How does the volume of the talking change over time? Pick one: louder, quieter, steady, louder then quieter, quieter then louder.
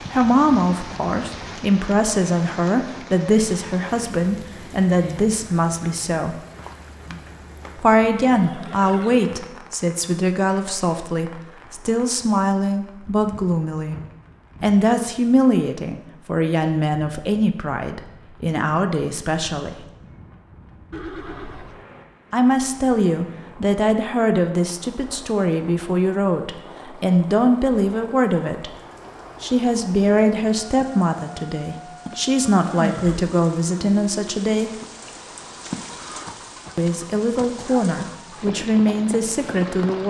steady.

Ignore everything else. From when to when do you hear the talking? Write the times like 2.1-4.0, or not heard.
0.1-6.3, 7.8-14.0, 14.6-19.9, 22.3-28.7, 29.4-34.7, 36.8-40.0.